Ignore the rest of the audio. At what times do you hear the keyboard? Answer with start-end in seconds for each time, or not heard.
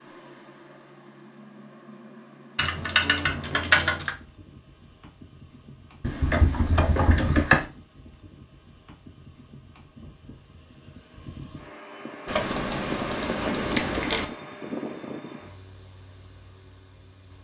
2.5-4.2, 6.0-7.7, 12.2-14.2.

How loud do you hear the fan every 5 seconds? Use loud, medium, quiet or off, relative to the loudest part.
quiet, quiet, loud, medium.